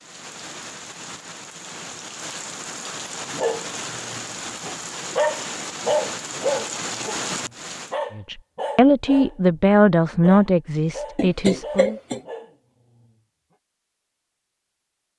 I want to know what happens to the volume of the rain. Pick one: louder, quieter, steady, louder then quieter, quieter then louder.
louder.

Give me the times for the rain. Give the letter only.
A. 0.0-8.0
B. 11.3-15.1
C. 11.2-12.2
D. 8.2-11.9
A.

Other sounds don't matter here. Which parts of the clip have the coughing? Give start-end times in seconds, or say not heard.
11.2-12.2.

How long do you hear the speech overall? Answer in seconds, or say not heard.
4 s.